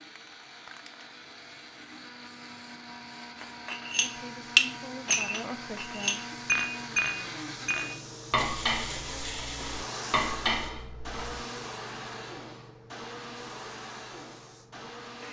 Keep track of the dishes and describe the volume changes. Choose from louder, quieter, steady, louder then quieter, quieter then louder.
quieter.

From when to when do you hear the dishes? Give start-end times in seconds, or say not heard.
3.4-11.2.